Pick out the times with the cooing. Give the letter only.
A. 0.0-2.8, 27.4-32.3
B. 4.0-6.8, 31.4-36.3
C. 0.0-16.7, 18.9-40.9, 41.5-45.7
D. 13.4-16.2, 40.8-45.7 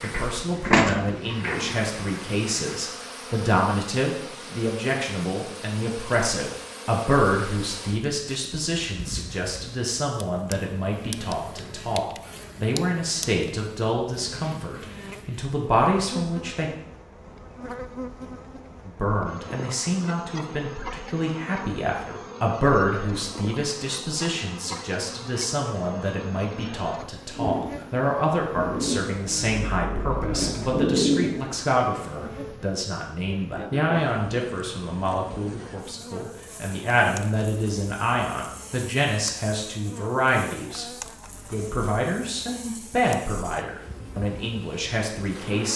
A.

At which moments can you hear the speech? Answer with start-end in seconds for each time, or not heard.
0.0-16.7, 18.9-40.9, 41.5-45.7.